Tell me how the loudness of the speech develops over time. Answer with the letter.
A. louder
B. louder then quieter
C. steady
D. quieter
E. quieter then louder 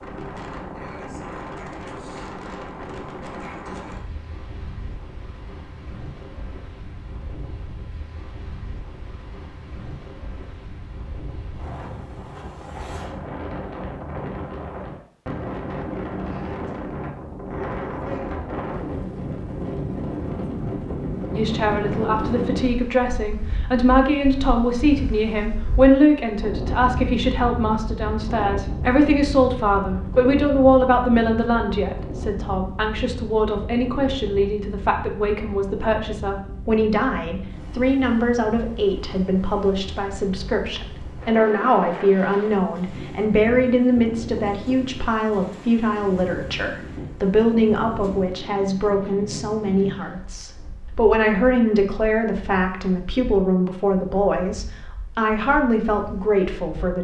C.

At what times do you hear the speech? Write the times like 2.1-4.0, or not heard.
21.3-56.9.